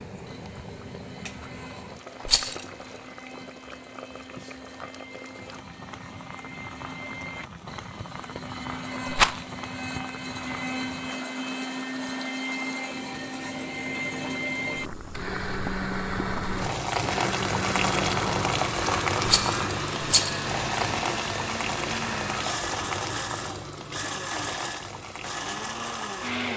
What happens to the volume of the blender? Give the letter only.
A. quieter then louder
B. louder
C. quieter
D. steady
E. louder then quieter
B.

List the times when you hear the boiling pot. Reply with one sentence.
The boiling pot can be heard from 0.0 to 26.5 s.